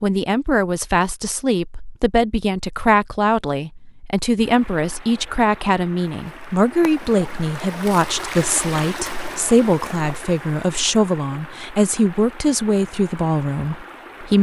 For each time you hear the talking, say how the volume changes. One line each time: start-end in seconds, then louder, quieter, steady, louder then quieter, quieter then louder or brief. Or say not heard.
0.0-14.3 steady.